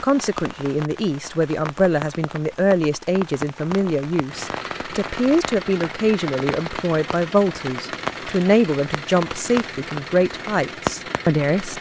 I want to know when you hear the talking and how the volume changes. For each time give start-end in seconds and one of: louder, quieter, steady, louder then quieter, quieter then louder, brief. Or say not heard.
0.0-11.7 steady.